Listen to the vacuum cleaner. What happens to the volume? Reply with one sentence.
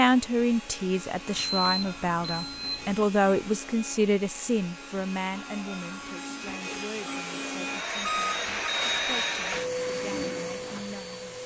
The volume of the vacuum cleaner goes up.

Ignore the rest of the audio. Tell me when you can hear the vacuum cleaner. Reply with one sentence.
The vacuum cleaner can be heard from 0.0 to 11.4 s.